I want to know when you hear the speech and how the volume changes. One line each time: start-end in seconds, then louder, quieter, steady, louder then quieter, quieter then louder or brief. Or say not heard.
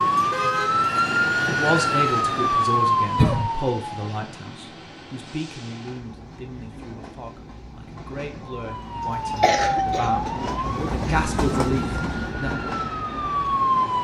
1.4-12.5 quieter then louder.